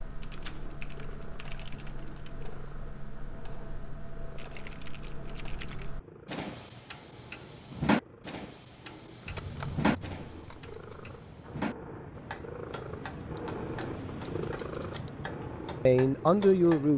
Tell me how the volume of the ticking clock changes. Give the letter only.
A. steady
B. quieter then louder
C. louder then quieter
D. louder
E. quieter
C.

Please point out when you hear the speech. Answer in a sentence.
The speech can be heard from 15.8 to 16.9 s.